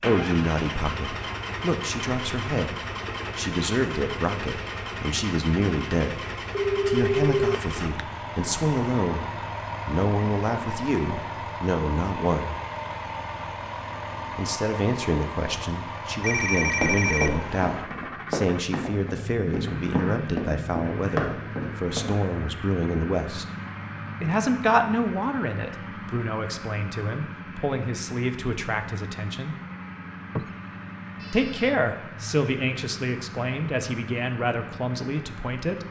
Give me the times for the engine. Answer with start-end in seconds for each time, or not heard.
0.0-35.8.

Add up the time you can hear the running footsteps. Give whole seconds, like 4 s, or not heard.
5 s.